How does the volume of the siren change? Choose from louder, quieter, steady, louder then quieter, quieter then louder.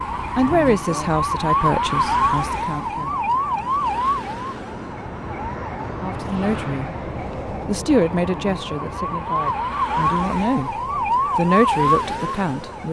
quieter then louder.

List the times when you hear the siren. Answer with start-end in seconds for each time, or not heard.
0.0-12.8.